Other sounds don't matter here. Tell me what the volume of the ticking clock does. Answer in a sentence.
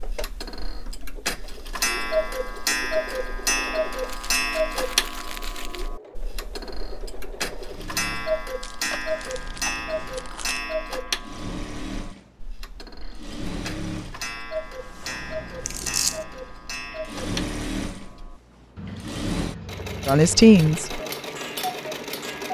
The loudness of the ticking clock goes down.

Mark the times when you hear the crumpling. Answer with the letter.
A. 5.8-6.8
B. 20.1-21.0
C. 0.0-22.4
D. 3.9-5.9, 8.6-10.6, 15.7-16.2
D.